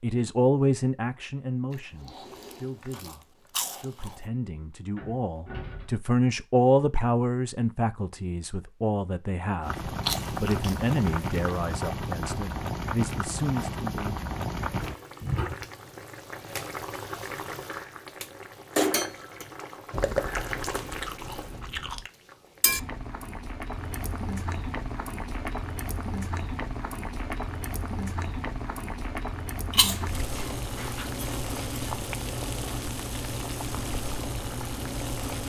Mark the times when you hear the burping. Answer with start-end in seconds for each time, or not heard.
not heard.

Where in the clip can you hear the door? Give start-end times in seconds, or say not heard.
5.0-5.9.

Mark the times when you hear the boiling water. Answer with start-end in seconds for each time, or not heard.
9.6-35.4.